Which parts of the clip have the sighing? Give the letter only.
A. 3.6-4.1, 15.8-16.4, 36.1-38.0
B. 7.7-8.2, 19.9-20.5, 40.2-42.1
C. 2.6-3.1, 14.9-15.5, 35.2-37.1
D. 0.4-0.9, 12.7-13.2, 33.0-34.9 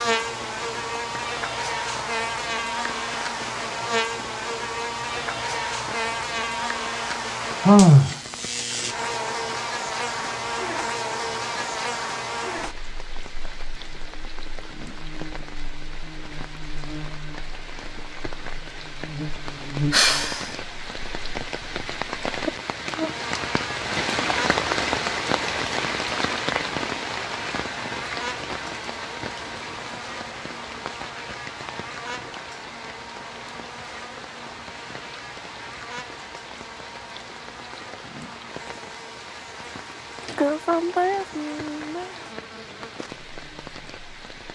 B.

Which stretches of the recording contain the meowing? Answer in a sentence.
The meowing can't be heard in this clip.